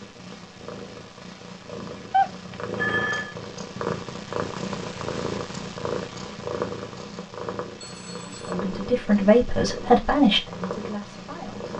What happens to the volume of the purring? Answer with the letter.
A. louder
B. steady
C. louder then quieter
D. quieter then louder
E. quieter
C.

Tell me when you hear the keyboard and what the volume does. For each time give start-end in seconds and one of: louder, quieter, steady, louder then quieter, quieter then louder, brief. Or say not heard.
not heard.